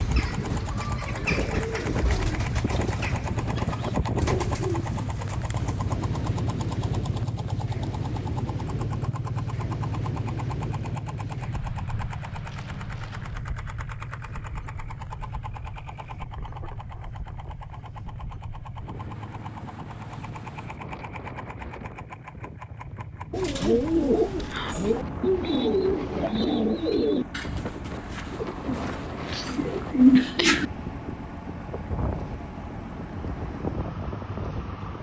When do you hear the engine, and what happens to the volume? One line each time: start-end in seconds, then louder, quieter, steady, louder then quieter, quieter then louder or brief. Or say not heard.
0.0-34.9 quieter.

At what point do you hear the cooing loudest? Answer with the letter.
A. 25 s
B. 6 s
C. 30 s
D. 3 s
C.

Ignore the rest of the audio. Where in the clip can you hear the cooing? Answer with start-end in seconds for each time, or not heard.
0.0-6.0, 23.3-30.6.